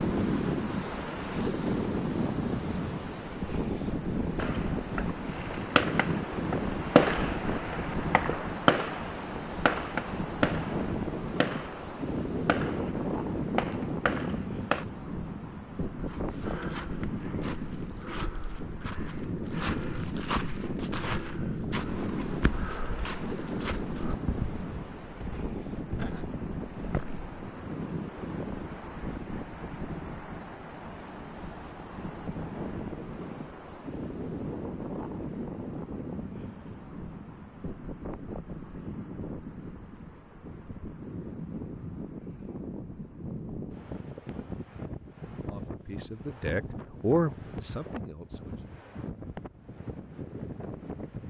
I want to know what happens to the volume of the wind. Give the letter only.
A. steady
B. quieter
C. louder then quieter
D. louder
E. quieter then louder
B.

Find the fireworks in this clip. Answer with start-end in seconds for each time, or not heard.
4.3-14.8.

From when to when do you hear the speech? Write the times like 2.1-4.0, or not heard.
45.3-48.5.